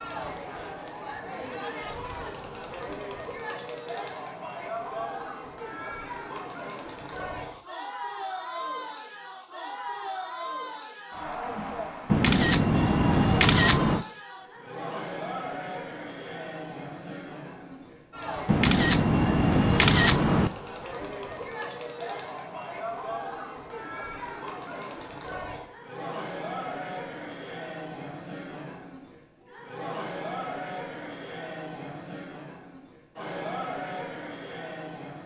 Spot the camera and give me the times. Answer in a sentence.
The camera can be heard from 12.1 to 14.1 s and from 18.4 to 20.5 s.